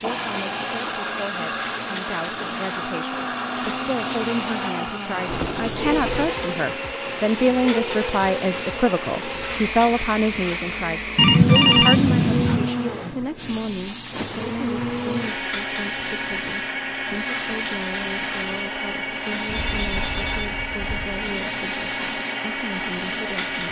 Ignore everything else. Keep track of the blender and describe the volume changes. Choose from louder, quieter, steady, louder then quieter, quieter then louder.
steady.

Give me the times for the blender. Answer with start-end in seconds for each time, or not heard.
0.0-23.6.